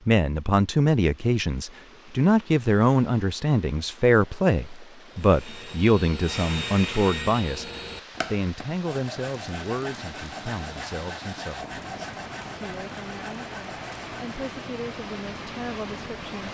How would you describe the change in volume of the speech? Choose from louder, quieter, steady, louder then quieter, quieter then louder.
quieter.